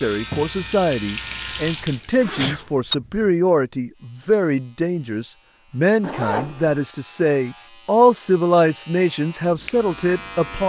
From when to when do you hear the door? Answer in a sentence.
The door can't be heard in this clip.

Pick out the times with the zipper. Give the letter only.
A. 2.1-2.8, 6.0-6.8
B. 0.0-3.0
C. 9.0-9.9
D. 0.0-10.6
A.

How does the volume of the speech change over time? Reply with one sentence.
The loudness of the speech stays about the same.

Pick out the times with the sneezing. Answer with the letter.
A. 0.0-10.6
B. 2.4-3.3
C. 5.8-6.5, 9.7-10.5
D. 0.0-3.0
B.